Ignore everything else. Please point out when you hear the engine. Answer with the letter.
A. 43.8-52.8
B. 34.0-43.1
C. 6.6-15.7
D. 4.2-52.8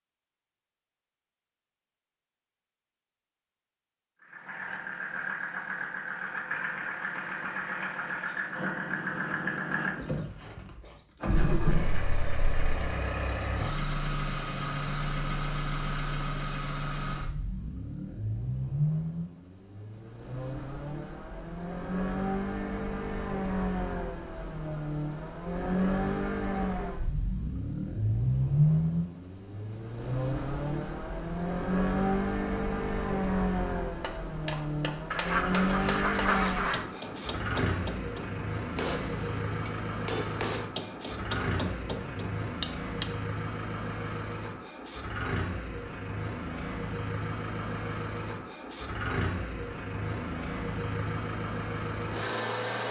D.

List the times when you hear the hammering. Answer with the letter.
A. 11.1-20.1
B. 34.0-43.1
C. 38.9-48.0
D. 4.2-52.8
B.